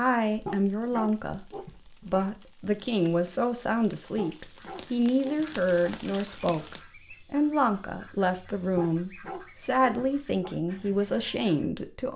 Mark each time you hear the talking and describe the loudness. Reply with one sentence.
You can hear the talking from 0.0 to 12.1 s, at a steady volume.